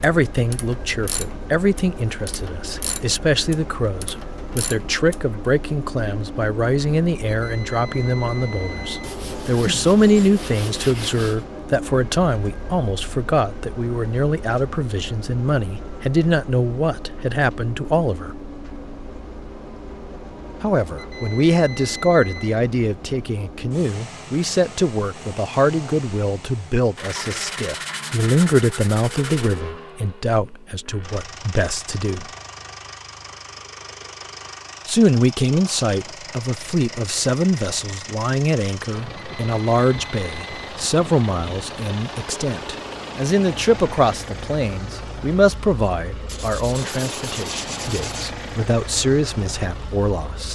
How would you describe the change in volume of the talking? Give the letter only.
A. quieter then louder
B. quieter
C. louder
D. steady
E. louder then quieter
D.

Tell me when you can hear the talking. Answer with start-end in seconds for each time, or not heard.
0.0-18.4, 20.6-32.2, 34.9-50.5.